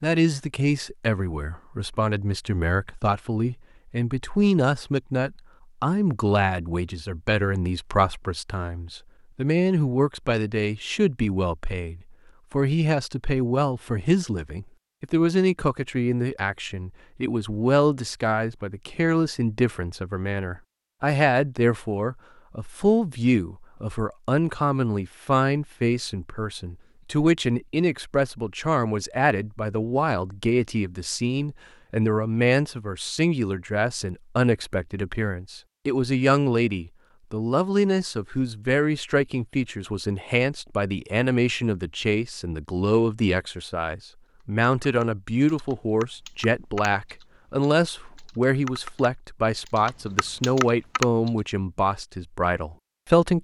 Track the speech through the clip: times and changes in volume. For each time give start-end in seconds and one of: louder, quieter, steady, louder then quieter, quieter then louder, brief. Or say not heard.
0.0-53.3 steady.